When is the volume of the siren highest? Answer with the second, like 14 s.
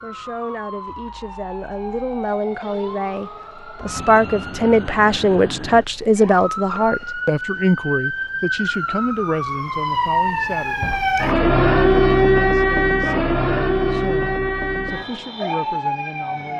12 s.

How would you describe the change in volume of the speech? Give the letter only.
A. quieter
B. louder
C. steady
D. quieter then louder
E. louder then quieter
E.